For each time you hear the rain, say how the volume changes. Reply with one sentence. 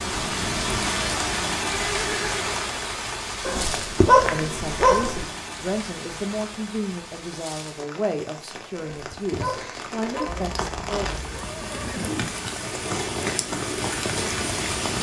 You can hear the rain from 0.0 to 14.9 s, getting quieter then louder.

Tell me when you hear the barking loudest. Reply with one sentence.
The volume of the barking peaks at 4 seconds.